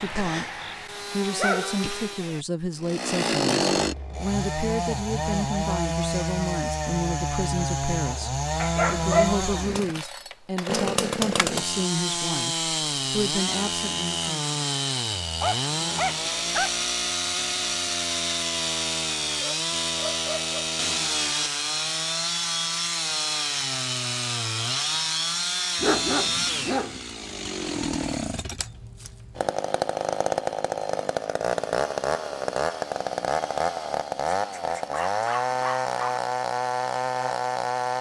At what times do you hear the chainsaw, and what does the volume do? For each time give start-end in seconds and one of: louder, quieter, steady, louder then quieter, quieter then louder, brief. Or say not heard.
0.0-37.9 steady.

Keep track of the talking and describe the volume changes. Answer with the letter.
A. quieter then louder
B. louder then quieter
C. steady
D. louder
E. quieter
C.